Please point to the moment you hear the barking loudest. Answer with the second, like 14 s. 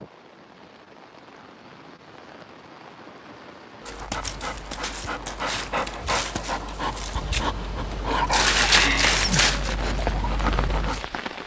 9 s.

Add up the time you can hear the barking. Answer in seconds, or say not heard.
7 s.